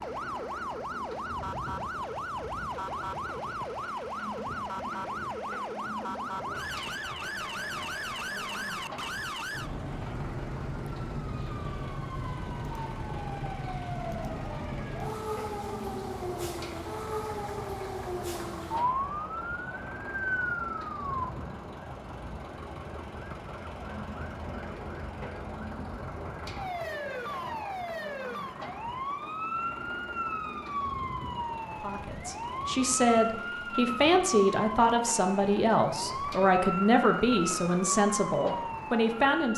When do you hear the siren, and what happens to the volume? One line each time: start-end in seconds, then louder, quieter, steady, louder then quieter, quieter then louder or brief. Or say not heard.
0.0-39.5 steady.